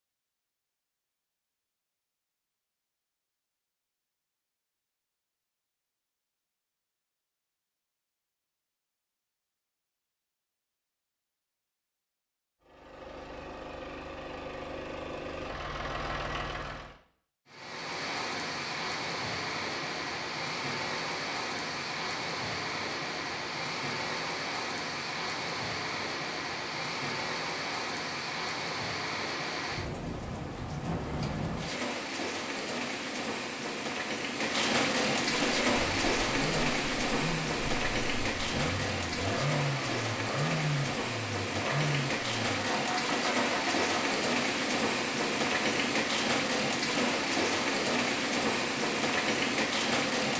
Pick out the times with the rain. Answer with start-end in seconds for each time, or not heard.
17.4-50.3.